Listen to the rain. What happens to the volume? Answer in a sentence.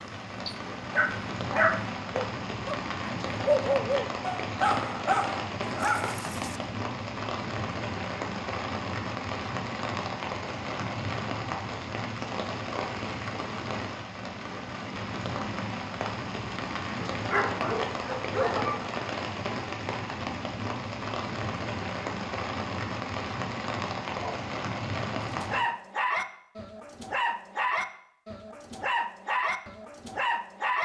The loudness of the rain stays about the same.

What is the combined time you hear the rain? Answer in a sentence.
You can hear the rain for 26 seconds altogether.